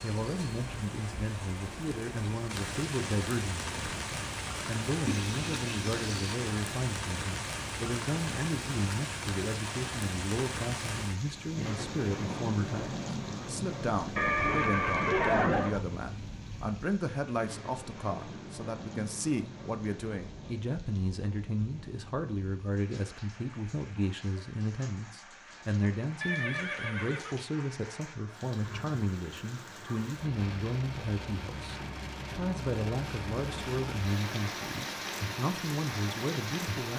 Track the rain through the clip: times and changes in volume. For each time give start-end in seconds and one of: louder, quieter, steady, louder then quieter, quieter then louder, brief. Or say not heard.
0.0-36.9 quieter then louder.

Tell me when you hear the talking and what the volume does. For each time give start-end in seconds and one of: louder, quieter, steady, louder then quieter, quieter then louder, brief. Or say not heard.
0.0-36.9 steady.